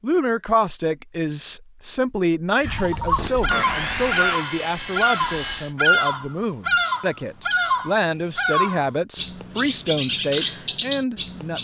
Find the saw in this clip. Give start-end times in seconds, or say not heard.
3.1-5.8.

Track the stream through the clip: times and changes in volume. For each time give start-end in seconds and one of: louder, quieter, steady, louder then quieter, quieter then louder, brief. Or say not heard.
not heard.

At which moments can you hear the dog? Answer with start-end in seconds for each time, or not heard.
not heard.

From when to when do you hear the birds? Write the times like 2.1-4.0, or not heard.
2.6-11.6.